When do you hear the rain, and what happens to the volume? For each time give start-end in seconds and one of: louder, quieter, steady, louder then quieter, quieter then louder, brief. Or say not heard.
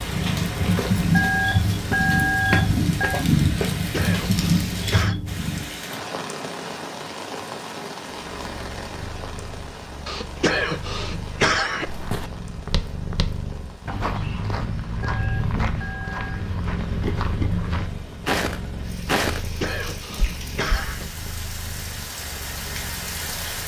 0.0-23.6 quieter then louder.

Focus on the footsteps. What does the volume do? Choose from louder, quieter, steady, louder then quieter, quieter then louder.
louder.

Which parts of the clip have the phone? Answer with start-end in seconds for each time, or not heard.
1.1-3.2, 15.0-16.4.